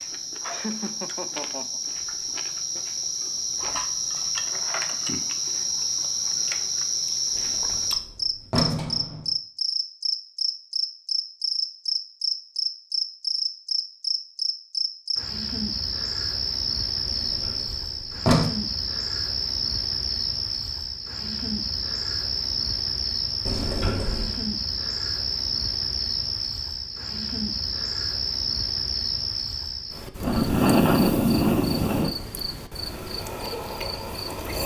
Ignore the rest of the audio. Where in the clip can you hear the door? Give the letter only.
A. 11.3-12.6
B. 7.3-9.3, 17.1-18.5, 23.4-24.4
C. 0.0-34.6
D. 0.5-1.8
B.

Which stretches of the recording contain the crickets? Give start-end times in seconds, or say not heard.
0.0-34.6.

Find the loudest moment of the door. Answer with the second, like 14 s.
18 s.